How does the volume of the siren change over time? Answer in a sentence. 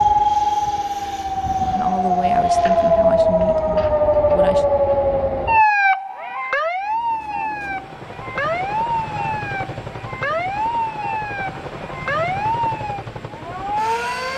The volume of the siren goes down.